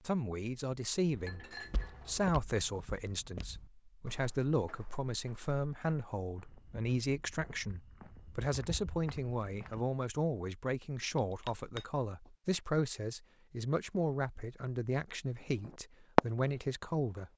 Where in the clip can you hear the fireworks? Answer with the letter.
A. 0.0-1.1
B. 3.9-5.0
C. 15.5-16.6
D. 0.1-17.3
C.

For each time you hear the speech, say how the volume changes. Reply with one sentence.
The speech can be heard from 0.1 to 17.3 s, at a steady volume.